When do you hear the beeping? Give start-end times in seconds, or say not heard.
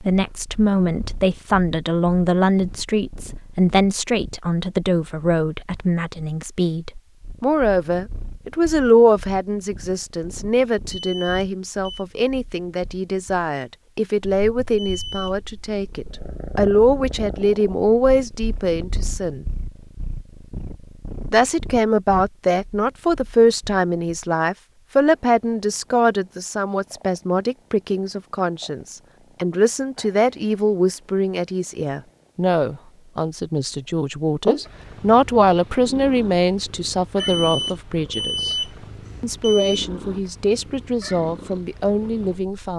10.9-12.1, 14.8-15.4, 37.1-39.9.